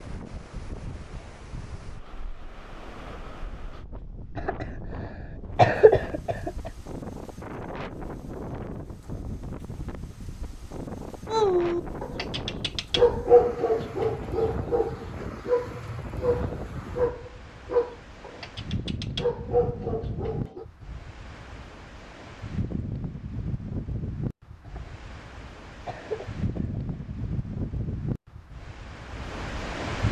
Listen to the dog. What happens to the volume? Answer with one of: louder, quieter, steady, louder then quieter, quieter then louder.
quieter.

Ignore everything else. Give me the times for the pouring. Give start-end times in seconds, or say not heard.
not heard.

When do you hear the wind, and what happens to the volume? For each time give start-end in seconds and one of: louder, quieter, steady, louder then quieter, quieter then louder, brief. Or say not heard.
0.0-30.0 louder.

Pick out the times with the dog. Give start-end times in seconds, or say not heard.
11.3-20.6.